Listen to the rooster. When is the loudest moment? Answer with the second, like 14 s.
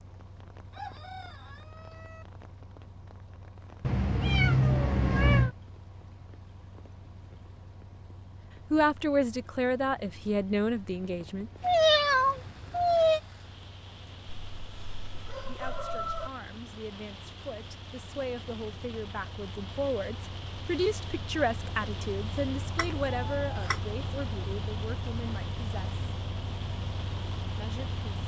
16 s.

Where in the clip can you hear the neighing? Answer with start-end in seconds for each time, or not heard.
not heard.